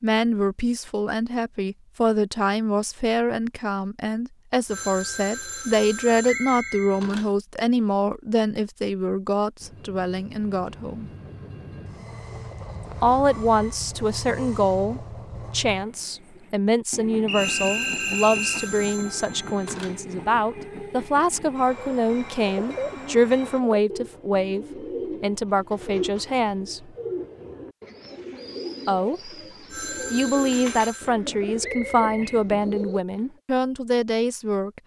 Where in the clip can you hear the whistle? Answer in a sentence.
The whistle can be heard from 6.2 to 7.0 s, from 17.2 to 18.7 s and from 31.6 to 32.5 s.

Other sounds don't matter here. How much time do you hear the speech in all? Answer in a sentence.
You can hear the speech for 30 seconds altogether.